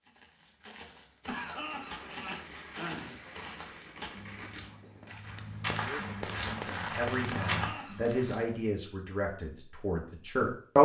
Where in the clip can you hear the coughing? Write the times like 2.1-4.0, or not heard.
1.2-3.2, 7.3-8.0.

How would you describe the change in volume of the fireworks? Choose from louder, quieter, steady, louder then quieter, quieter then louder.
louder.